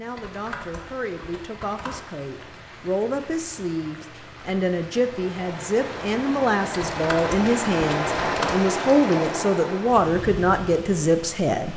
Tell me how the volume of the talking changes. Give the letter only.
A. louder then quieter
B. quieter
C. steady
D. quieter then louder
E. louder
E.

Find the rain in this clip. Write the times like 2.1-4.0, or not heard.
0.0-11.7.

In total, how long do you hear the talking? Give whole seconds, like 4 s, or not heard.
12 s.